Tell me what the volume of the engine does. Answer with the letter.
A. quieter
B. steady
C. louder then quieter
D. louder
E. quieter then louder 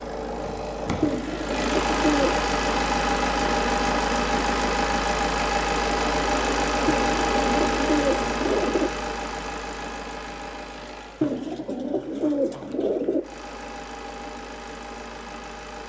A.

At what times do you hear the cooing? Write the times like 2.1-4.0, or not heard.
1.0-2.5, 6.8-8.9, 11.2-13.2.